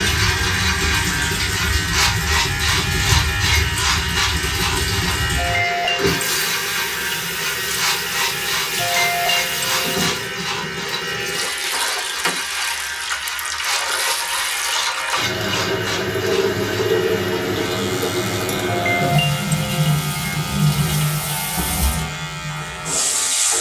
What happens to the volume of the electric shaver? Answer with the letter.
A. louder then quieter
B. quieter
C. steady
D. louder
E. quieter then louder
B.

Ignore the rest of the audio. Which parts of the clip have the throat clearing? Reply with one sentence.
The throat clearing can be heard from 5.3 to 6.3 s, from 8.8 to 9.9 s and from 18.6 to 19.9 s.